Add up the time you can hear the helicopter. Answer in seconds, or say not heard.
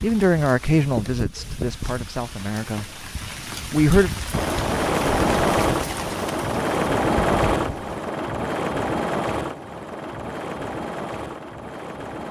8 s.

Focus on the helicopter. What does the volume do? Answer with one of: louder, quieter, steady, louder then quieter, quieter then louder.
quieter.